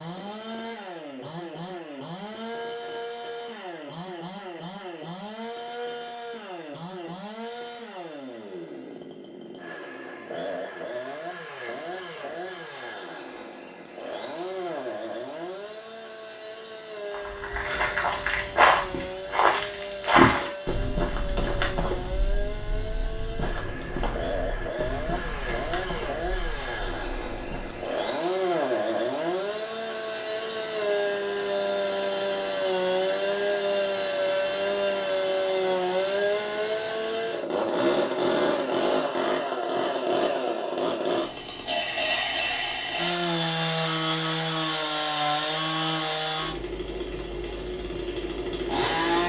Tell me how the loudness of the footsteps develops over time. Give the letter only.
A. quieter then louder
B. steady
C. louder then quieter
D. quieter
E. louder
D.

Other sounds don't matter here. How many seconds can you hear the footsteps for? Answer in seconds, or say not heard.
11 s.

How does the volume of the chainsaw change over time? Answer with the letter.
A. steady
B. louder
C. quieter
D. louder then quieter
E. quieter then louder
B.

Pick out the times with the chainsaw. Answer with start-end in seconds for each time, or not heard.
0.0-49.2.